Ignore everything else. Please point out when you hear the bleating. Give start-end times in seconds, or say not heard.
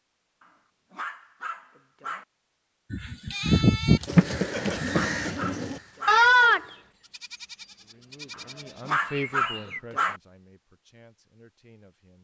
2.9-9.8.